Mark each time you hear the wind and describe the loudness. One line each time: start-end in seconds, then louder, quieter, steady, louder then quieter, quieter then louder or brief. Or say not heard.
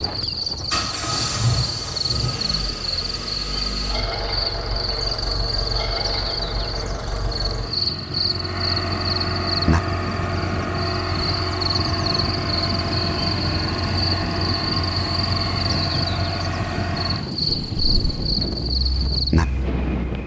0.0-20.2 louder.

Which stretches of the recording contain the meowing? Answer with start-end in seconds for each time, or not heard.
not heard.